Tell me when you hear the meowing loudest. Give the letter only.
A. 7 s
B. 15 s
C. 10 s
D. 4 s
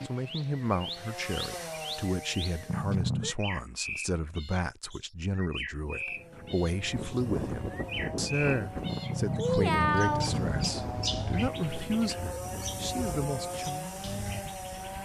C.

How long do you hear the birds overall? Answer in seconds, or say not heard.
15 s.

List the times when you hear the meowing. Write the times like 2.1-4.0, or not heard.
2.6-3.4, 8.8-10.7.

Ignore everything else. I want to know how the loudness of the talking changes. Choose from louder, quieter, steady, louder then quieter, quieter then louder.
steady.